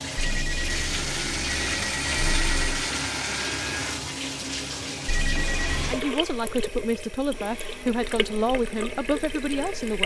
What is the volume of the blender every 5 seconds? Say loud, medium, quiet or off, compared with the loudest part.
loud, medium.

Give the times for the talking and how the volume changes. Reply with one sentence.
You can hear the talking from 5.8 to 10.0 s, at a steady volume.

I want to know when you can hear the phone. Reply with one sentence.
The phone can be heard from 0.1 to 2.9 s and from 5.0 to 6.0 s.